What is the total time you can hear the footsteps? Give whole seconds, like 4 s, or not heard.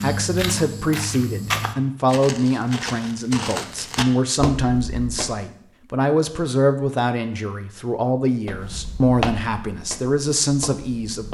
8 s.